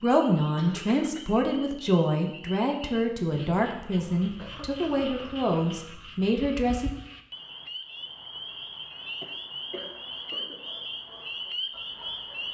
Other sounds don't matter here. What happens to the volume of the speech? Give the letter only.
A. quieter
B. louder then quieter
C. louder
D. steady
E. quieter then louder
D.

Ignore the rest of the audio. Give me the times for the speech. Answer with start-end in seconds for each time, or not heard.
0.0-6.9.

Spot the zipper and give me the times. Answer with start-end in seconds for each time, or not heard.
not heard.